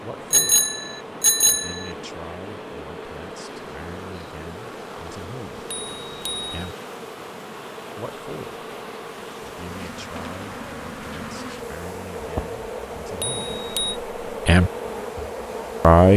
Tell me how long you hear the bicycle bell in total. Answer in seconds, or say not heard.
3 s.